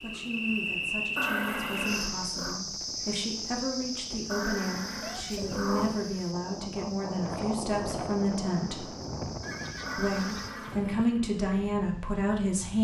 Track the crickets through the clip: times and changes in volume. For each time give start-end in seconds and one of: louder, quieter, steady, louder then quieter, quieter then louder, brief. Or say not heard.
0.0-10.5 quieter.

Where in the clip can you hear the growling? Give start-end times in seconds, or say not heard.
1.1-2.6, 4.2-6.1, 9.8-10.8.